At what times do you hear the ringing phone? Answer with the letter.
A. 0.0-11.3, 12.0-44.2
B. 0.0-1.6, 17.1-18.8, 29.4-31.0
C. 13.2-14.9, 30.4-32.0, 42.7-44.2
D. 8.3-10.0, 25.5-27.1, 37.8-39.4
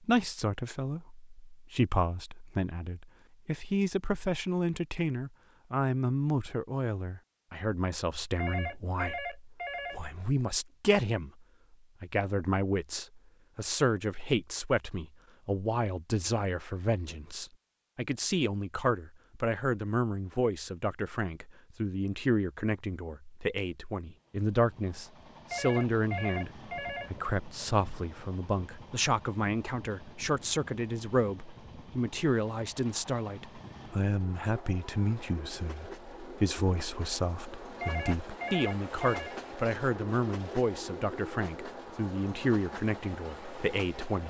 D.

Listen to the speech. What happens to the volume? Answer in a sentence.
The loudness of the speech stays about the same.